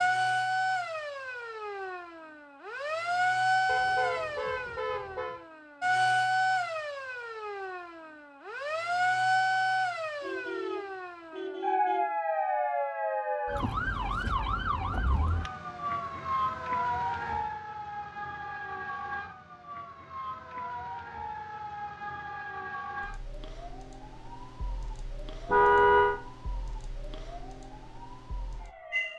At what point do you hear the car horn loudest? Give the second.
26 s.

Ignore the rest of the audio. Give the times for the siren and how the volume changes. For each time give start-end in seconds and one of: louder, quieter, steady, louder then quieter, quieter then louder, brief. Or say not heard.
0.0-29.1 quieter.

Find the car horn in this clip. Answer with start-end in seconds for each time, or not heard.
3.6-5.4, 10.2-12.1, 25.4-26.2.